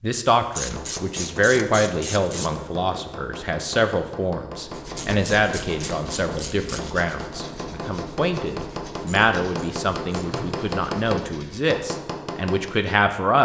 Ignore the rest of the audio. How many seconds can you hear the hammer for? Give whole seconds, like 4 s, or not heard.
12 s.